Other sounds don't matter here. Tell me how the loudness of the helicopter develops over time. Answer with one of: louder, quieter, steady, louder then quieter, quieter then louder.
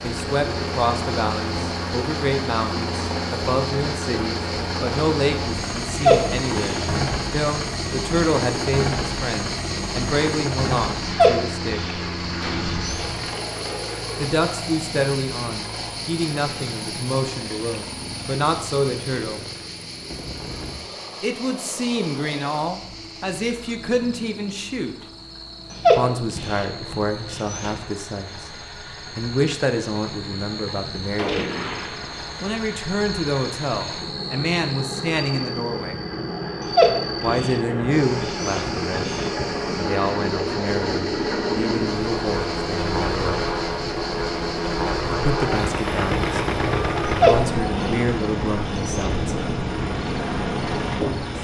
quieter then louder.